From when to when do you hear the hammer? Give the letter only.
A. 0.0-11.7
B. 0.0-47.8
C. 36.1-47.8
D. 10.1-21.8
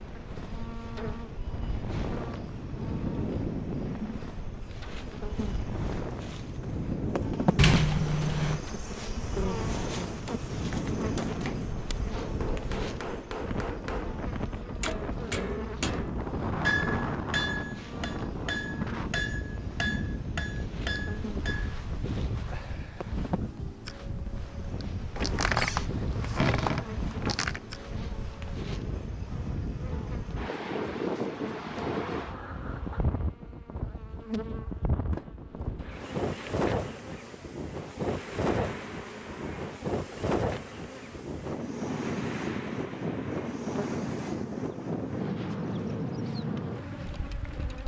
D.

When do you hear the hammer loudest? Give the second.
17 s.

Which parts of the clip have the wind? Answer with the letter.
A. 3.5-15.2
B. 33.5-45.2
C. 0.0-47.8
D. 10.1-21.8
C.